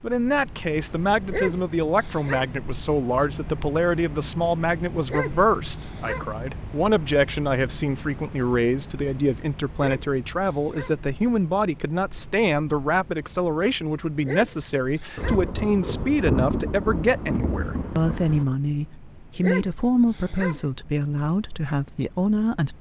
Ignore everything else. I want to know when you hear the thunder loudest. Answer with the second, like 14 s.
16 s.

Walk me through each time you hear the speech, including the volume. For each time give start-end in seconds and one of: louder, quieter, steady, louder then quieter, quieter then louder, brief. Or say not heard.
0.0-22.7 steady.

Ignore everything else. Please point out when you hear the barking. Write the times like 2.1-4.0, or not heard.
1.2-2.5, 5.0-6.3, 9.7-11.0, 14.2-15.4, 19.4-20.6.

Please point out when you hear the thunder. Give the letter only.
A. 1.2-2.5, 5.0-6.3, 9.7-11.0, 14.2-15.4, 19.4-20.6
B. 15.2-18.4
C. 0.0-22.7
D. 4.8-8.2
B.